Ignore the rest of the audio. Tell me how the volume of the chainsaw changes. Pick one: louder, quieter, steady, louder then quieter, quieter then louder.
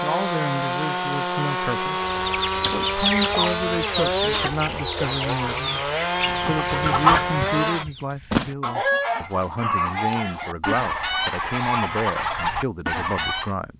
steady.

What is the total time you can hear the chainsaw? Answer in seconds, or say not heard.
8 s.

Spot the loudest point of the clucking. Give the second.
7 s.